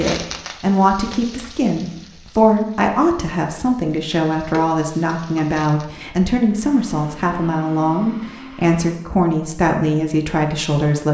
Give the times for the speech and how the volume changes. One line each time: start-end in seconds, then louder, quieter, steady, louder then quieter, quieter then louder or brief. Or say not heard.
0.0-11.0 steady.